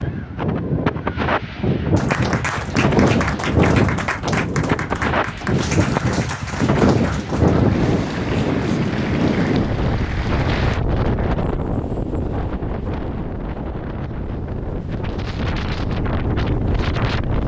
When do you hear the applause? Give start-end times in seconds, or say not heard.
1.9-10.8.